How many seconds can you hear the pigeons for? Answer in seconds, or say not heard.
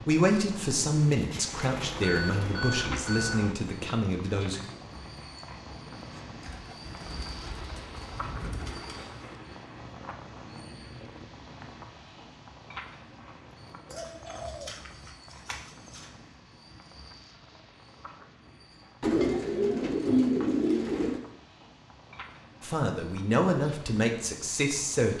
9 s.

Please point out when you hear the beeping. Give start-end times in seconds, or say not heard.
1.7-3.5.